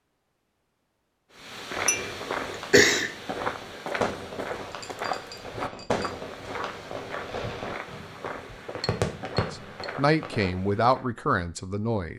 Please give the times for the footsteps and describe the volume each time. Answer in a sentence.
The footsteps can be heard from 1.4 to 11.1 s, getting quieter.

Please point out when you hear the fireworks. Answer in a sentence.
The fireworks can be heard from 1.9 to 10.3 s.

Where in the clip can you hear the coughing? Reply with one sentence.
You can hear the coughing from 1.7 to 3.1 s.